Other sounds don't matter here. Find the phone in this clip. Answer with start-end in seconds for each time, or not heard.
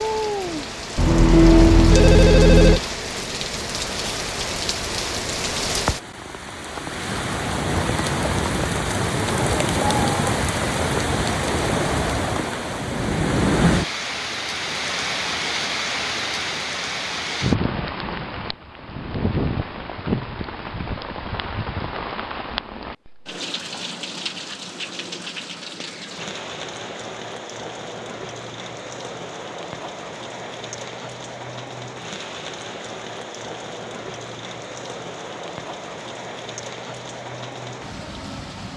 0.9-2.8.